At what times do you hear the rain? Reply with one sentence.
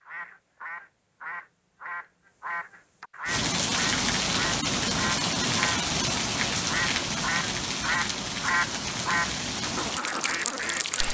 The rain can be heard from 3.2 to 11.0 s.